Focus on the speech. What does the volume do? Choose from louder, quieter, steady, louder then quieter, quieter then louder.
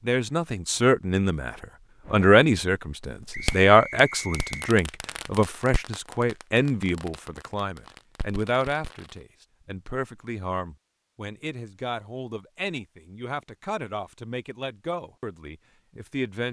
quieter.